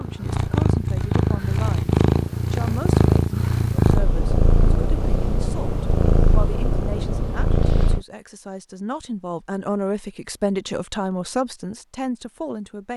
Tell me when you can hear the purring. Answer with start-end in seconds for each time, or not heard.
0.0-8.1.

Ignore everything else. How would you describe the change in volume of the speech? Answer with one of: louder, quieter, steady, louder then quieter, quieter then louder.
louder.